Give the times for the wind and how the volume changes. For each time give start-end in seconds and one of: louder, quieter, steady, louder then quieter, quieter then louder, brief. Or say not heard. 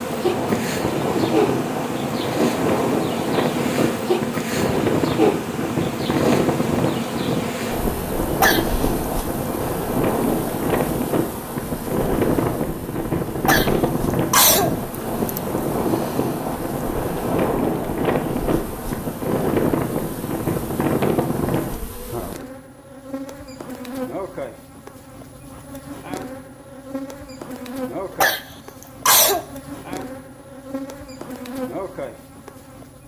0.0-21.8 steady.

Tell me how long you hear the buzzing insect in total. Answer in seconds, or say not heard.
33 s.